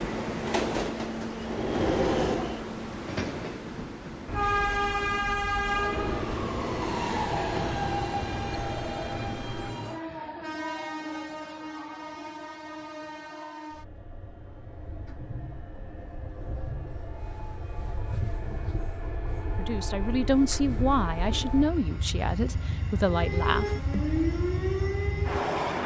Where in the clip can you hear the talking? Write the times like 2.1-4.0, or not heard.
19.6-24.0.